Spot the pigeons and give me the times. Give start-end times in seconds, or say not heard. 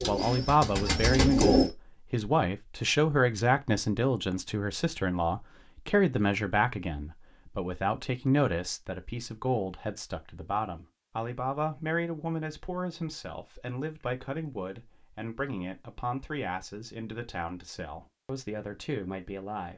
0.0-1.7.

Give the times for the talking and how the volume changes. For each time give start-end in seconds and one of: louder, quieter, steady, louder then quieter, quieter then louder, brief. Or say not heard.
0.1-19.7 quieter.